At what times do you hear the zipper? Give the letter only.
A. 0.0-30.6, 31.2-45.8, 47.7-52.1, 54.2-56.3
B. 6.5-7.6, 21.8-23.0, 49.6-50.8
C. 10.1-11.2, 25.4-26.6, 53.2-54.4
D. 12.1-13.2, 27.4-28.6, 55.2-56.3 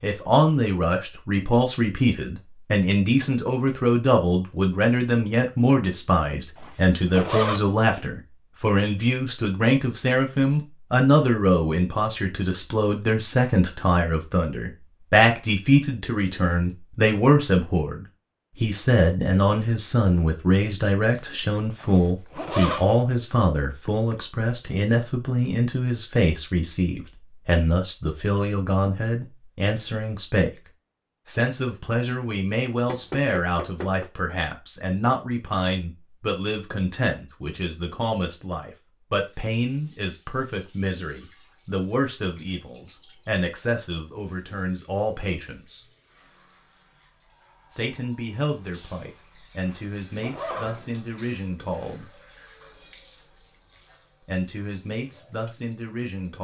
B.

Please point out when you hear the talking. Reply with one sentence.
You can hear the talking from 0.0 to 30.6 s, from 31.2 to 45.8 s, from 47.7 to 52.1 s and from 54.2 to 56.3 s.